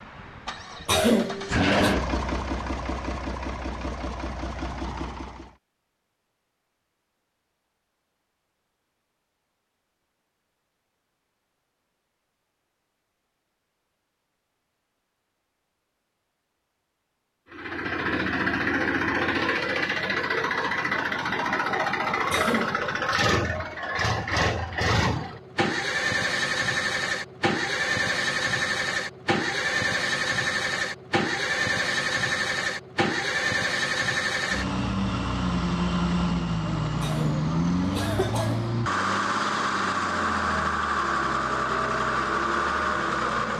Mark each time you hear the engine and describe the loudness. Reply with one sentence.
The engine can be heard from 0.0 to 5.5 s, getting louder then quieter; and from 17.5 to 43.5 s, at a steady volume.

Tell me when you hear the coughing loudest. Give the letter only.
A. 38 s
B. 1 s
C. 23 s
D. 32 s
B.